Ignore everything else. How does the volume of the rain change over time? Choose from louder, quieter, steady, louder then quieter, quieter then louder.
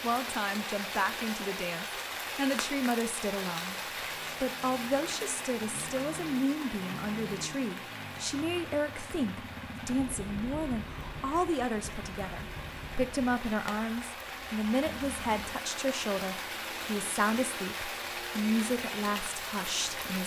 quieter then louder.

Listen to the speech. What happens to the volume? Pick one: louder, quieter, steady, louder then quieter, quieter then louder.
steady.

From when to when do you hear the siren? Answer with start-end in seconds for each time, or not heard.
not heard.